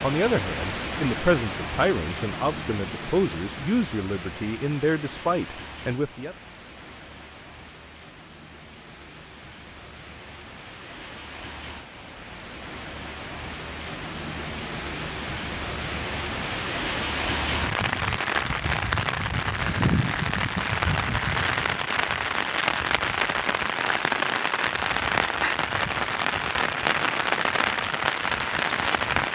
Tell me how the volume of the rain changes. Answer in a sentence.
The loudness of the rain goes down, then up.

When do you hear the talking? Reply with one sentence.
The talking can be heard from 0.0 to 6.3 s.